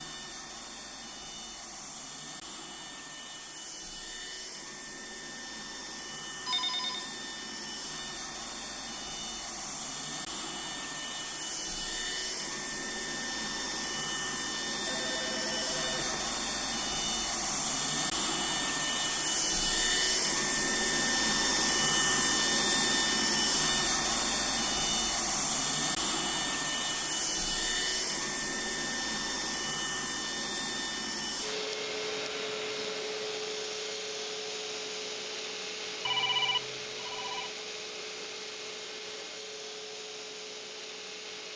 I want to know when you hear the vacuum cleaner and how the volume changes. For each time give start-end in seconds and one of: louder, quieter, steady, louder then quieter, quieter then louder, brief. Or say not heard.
0.0-41.5 louder then quieter.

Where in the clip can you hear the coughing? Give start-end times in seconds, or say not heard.
not heard.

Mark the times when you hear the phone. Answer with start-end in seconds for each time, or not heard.
6.5-7.1, 14.8-16.4, 36.0-37.5.